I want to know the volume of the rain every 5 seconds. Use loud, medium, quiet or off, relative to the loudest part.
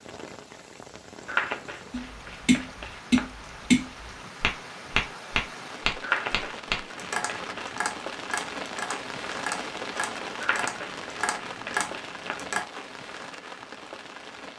medium, loud, loud.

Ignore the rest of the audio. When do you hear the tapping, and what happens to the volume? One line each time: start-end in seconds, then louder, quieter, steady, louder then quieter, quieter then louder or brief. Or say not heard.
1.9-12.7 quieter.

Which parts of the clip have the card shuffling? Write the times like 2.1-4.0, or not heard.
1.2-3.3, 6.0-7.8, 10.4-12.4.